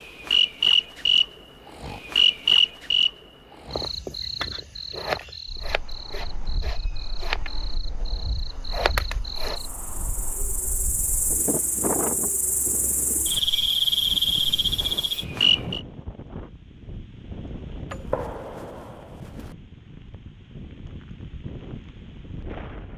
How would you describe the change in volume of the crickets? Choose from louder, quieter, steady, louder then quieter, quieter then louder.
quieter then louder.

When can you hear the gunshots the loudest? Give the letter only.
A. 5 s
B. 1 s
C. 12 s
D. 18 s
D.